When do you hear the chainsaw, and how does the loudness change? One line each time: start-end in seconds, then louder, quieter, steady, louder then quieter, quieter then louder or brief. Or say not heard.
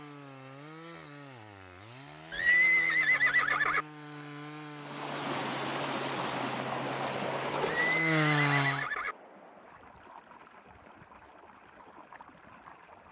0.0-8.8 louder.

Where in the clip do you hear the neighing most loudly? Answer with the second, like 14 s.
3 s.